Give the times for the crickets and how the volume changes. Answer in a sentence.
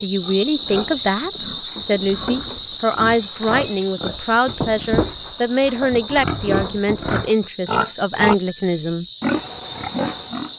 The crickets can be heard from 0.0 to 10.5 s, getting quieter.